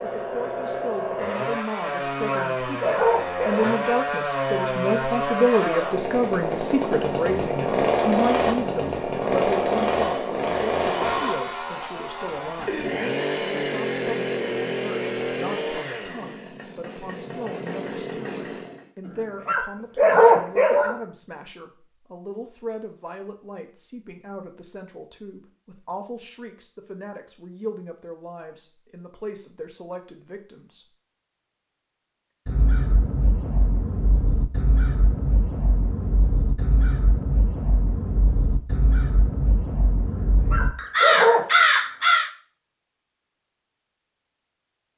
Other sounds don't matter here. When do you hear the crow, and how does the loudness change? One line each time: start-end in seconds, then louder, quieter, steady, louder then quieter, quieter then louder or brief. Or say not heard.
32.5-42.3 louder.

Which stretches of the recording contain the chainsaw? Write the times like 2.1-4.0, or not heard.
0.0-18.9.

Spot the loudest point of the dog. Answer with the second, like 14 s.
20 s.